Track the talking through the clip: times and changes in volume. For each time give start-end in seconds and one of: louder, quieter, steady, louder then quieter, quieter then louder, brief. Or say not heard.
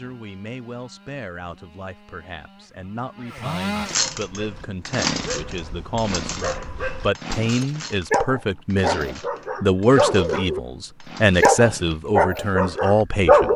0.0-13.5 louder.